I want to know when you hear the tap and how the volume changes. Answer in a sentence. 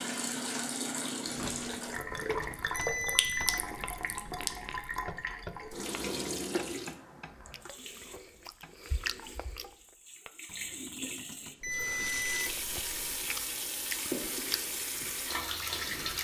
You can hear the tap from 0.0 to 16.2 s, getting quieter then louder.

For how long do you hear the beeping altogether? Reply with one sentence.
You can hear the beeping for 3 seconds altogether.